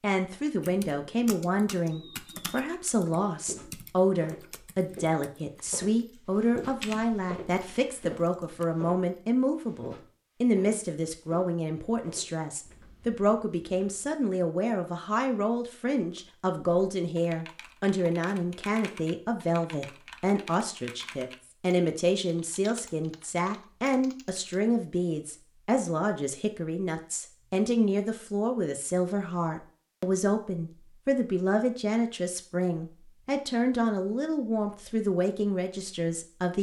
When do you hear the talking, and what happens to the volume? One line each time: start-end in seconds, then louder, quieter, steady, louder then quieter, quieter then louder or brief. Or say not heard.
0.0-36.5 steady.